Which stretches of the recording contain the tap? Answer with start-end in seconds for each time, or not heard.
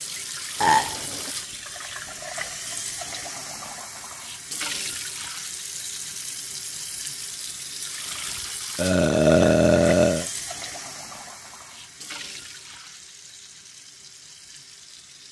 0.0-15.2.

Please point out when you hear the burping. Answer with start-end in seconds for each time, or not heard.
0.6-1.3, 8.8-10.2.